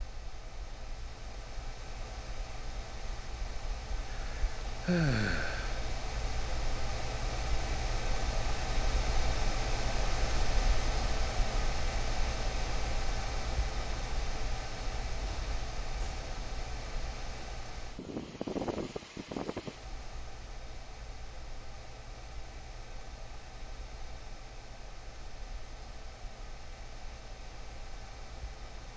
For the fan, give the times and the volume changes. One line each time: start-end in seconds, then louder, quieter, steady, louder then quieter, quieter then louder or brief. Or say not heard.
0.0-28.9 louder then quieter.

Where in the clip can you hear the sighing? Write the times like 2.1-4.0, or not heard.
4.1-5.8.